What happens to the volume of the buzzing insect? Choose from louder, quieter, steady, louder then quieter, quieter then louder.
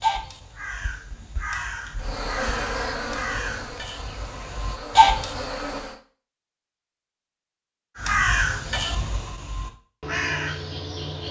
quieter then louder.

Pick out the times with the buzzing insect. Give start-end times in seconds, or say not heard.
1.9-6.0.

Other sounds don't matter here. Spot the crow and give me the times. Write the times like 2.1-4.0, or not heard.
0.0-5.5, 8.0-11.2.